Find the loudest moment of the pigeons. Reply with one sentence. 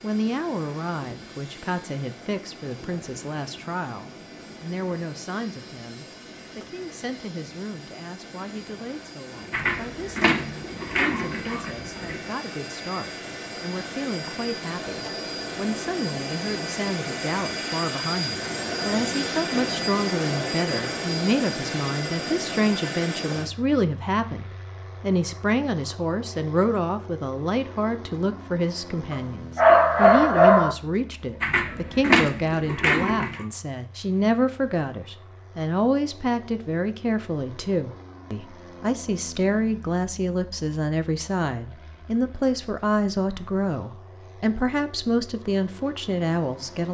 The volume of the pigeons peaks at 32 seconds.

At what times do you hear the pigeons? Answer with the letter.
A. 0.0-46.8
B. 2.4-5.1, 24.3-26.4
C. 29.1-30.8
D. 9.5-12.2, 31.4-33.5
D.